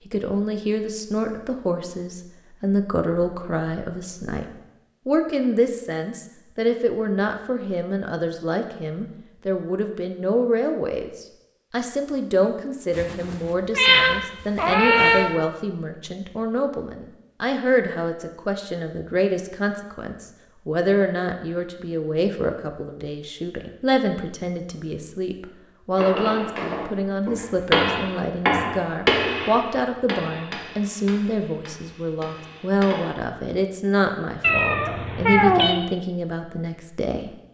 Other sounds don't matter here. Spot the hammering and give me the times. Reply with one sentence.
The hammering can be heard from 25.9 to 33.1 s.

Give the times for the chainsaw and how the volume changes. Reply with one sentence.
You can't hear the chainsaw here.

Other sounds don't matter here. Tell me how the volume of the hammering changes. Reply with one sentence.
The volume of the hammering goes up, then down.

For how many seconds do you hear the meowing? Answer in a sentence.
You can hear the meowing for 4 seconds altogether.